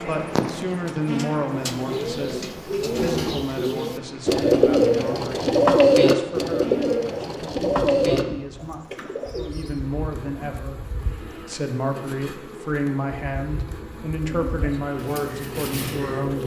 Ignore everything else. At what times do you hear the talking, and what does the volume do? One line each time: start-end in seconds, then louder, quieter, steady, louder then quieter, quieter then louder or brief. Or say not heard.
0.0-16.4 quieter then louder.